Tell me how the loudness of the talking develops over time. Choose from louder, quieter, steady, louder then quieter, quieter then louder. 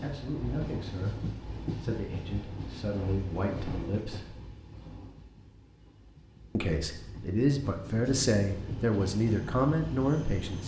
louder.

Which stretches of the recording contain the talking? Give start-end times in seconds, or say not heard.
0.0-4.3, 6.5-10.6.